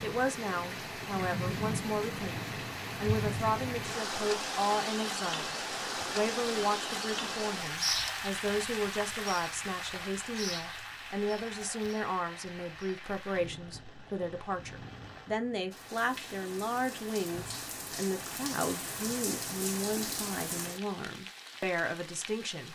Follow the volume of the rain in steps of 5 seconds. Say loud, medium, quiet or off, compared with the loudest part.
loud, loud, medium, medium, medium.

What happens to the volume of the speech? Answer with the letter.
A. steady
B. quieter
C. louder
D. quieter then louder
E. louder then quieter
A.